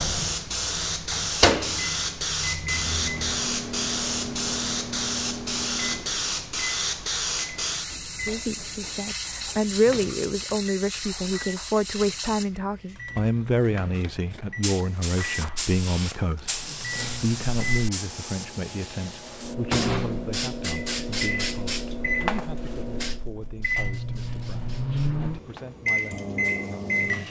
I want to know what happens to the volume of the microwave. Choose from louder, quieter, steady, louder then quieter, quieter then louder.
quieter then louder.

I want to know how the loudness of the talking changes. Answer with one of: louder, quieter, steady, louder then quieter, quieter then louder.
quieter.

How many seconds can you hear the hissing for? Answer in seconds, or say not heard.
27 s.